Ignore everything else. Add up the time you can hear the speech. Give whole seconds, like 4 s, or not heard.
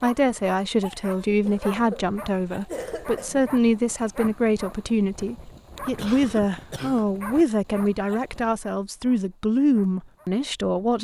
11 s.